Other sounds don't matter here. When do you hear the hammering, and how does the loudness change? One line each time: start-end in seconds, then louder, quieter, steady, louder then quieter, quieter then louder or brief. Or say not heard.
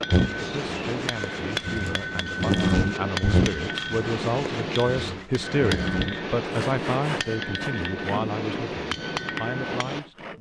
0.0-10.3 steady.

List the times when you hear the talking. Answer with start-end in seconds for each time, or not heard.
0.3-10.2.